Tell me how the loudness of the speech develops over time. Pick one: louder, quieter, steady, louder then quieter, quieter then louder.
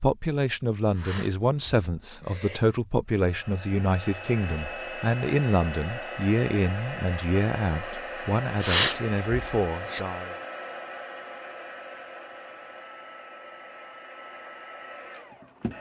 steady.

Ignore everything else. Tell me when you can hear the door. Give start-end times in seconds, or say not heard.
not heard.